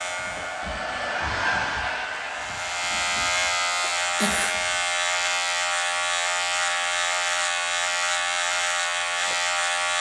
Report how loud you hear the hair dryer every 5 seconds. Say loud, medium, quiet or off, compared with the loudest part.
loud, off.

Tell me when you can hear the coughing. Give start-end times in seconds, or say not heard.
3.8-4.5.